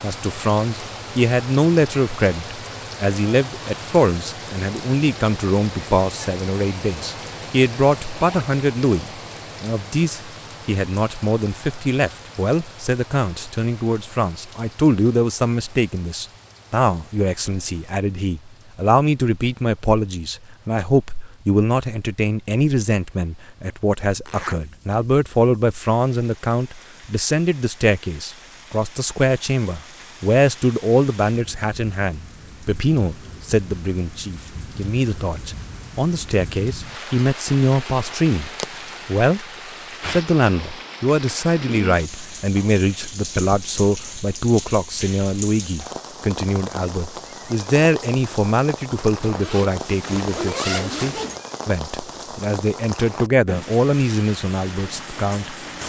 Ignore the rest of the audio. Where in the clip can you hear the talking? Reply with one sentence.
You can hear the talking from 0.0 to 39.5 s and from 40.0 to 55.8 s.